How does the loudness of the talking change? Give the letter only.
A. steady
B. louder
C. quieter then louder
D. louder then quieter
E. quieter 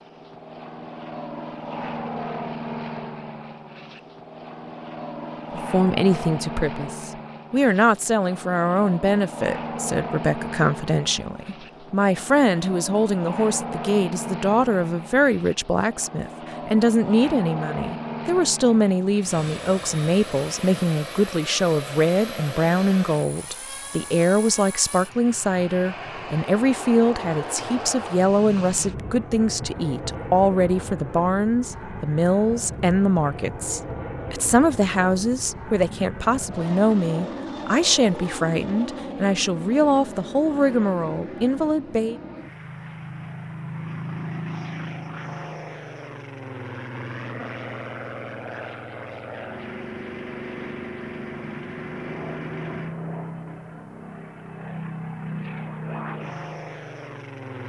A.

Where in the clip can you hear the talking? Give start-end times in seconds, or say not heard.
5.5-42.1.